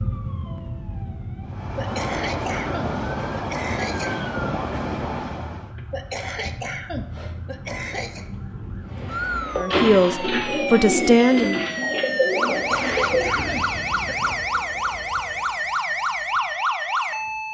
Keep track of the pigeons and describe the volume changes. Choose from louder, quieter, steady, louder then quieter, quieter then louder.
steady.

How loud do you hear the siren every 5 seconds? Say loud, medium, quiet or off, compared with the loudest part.
medium, medium, loud, loud.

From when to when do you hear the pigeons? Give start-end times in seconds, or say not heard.
8.8-13.6.